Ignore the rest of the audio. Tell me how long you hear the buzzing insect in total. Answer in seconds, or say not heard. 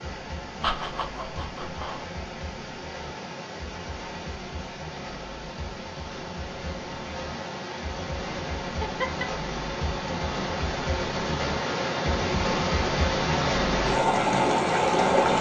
not heard.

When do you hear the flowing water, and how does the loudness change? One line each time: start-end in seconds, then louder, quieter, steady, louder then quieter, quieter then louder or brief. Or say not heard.
0.0-15.3 louder.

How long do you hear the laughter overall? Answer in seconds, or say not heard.
2 s.